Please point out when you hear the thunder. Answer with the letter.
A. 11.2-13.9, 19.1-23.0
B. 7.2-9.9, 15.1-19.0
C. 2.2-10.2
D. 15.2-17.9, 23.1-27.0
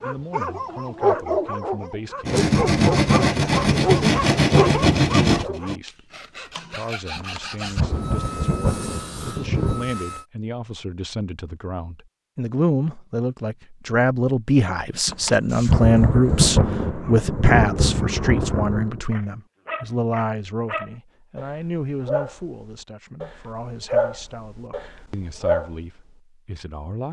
B.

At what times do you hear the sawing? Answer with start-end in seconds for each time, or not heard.
2.2-10.2.